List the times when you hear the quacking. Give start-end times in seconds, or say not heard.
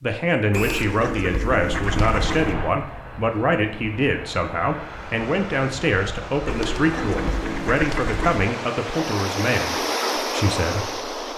0.5-2.5, 6.5-8.4.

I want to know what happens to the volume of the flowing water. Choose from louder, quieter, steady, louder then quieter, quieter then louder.
louder.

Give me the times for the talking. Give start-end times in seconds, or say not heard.
0.0-11.2.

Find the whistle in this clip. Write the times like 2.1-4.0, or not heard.
0.5-0.9.